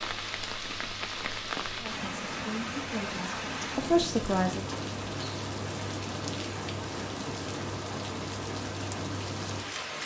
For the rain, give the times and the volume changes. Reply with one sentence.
You can hear the rain from 0.0 to 10.0 s, at a steady volume.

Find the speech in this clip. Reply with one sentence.
You can hear the speech from 1.8 to 4.7 s.